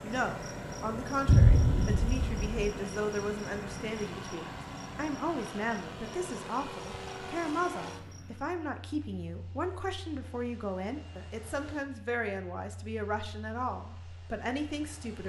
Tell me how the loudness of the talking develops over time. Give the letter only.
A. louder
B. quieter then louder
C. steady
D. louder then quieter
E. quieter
C.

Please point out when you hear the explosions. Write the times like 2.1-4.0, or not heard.
1.2-2.5.